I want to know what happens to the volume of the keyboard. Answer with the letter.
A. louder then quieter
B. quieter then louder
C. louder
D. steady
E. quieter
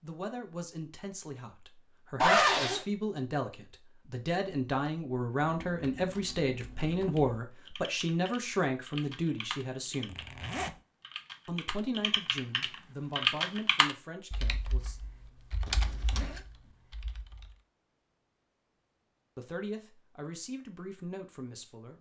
A.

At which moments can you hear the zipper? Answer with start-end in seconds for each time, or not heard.
2.2-2.9, 10.1-10.8, 15.7-16.4.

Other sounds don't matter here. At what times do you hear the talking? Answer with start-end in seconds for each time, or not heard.
0.0-10.2, 11.4-15.0, 19.4-21.9.